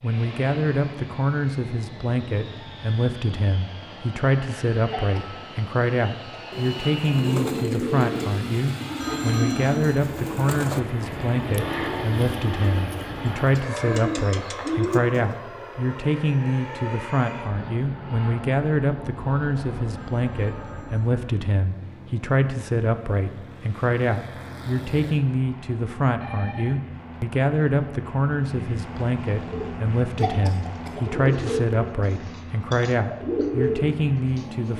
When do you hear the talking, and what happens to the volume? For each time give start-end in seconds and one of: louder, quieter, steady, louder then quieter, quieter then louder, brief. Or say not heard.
0.0-34.7 steady.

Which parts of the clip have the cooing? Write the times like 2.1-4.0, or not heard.
6.5-15.3, 29.4-34.7.